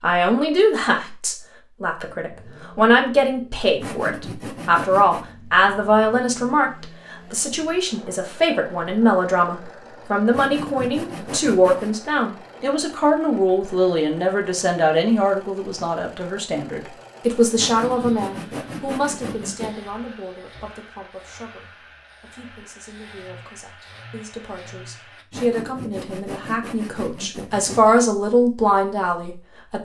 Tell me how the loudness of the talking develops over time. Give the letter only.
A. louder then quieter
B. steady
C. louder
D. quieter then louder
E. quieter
D.